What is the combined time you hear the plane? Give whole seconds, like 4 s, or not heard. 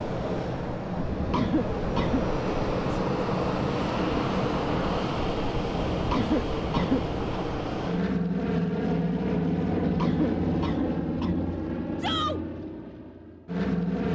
14 s.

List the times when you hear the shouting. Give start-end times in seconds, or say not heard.
12.0-12.4.